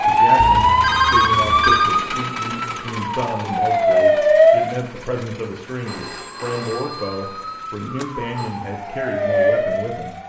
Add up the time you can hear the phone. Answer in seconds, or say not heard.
4 s.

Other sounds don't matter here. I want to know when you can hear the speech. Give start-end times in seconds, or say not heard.
0.0-10.2.